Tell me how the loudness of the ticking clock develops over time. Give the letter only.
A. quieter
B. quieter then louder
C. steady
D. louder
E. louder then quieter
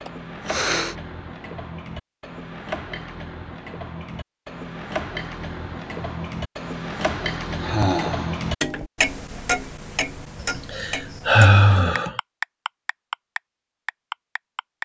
D.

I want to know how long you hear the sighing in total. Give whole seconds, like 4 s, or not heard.
3 s.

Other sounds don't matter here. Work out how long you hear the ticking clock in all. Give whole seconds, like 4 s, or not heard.
15 s.